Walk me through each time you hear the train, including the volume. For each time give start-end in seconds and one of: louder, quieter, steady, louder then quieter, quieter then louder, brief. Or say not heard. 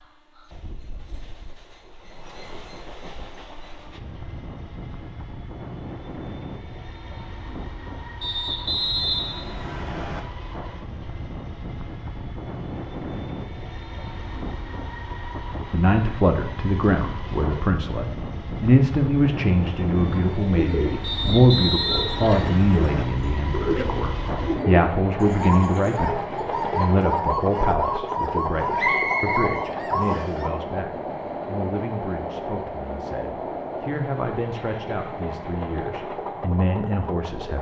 0.0-37.5 louder.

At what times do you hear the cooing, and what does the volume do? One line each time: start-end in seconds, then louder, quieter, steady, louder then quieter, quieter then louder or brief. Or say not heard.
20.1-30.5 steady.